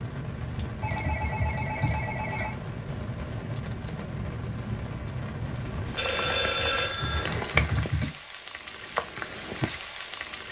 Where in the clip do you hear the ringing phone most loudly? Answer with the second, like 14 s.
7 s.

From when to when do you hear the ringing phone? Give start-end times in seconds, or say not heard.
0.8-2.5, 6.0-7.3.